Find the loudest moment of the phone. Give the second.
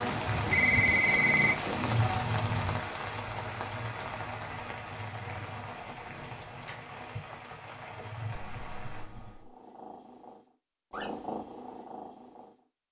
1 s.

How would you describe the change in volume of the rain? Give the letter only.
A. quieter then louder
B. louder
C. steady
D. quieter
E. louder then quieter
D.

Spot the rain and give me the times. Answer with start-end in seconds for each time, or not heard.
0.0-9.1.